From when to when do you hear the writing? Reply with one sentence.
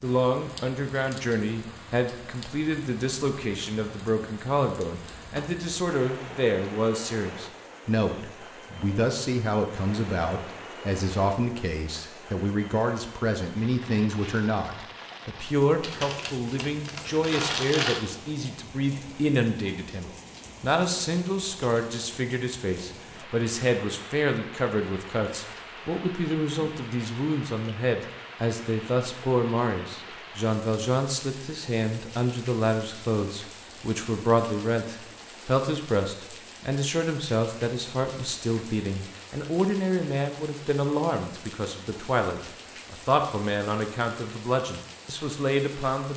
The writing can't be heard in this clip.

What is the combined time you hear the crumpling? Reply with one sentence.
You can hear the crumpling for 2 seconds altogether.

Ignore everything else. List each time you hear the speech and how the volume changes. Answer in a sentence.
The speech can be heard from 0.0 to 46.1 s, at a steady volume.